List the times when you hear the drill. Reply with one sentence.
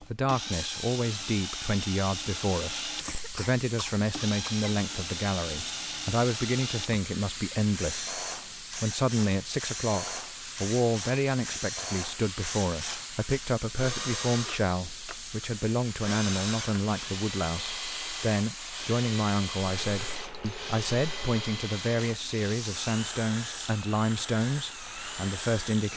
You can hear the drill from 0.0 to 25.9 s.